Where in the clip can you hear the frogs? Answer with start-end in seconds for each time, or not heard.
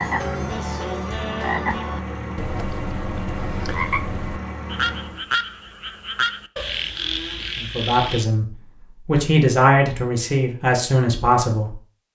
0.0-8.2.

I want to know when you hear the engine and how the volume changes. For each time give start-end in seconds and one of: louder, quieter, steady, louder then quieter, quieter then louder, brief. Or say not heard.
0.0-5.2 steady.